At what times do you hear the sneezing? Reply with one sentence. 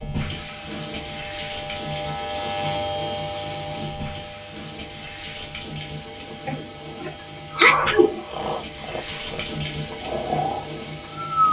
You can hear the sneezing from 6.5 to 8.2 s.